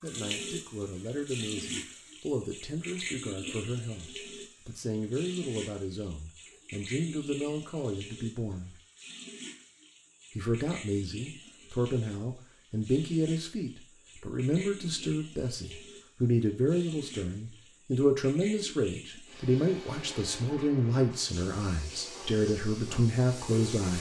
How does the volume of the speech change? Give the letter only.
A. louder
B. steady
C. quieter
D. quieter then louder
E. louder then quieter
A.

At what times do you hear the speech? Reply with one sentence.
The speech can be heard from 0.0 to 8.8 s and from 10.3 to 23.9 s.